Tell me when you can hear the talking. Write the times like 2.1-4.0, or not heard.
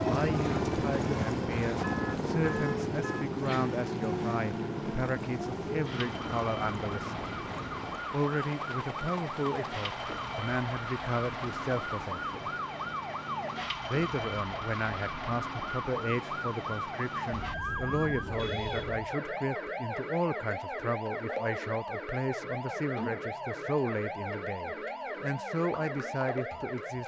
0.0-7.2, 8.1-12.5, 13.9-27.0.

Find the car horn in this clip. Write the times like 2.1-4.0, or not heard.
1.8-3.2, 17.3-19.1.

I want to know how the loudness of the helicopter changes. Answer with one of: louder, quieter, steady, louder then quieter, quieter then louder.
quieter.